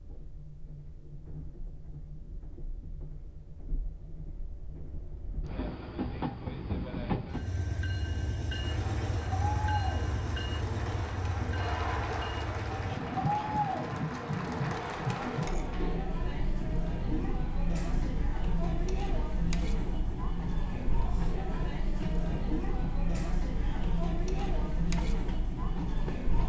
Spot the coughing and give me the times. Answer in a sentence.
You can't hear the coughing here.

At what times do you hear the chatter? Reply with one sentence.
The chatter can be heard from 8.6 to 26.4 s.